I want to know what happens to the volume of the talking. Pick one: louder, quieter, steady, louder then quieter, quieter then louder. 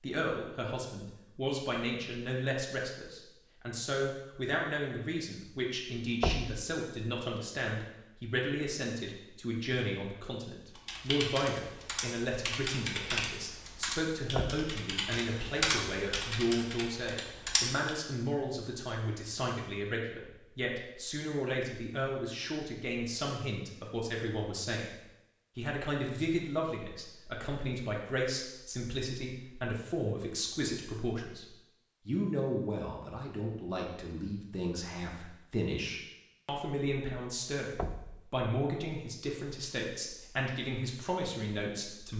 steady.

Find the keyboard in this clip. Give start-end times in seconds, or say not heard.
10.8-17.9.